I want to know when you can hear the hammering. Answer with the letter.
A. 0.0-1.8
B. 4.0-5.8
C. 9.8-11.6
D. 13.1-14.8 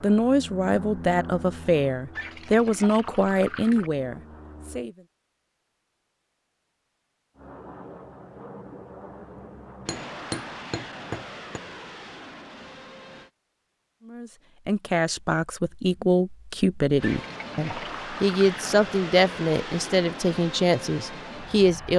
C.